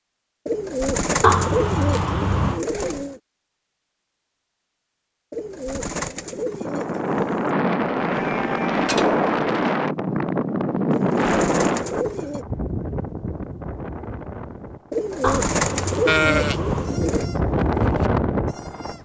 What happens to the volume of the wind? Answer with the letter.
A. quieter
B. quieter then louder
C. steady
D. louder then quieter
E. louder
B.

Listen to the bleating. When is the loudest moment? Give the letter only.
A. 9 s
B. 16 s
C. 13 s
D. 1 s
B.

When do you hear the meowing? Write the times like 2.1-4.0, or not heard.
1.2-2.6, 15.2-17.0.